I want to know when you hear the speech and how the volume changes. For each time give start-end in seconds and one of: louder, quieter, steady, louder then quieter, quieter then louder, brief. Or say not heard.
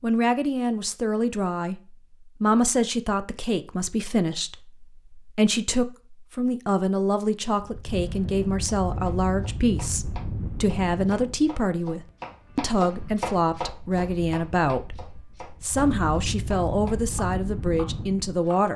0.0-18.7 steady.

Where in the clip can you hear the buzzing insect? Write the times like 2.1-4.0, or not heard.
not heard.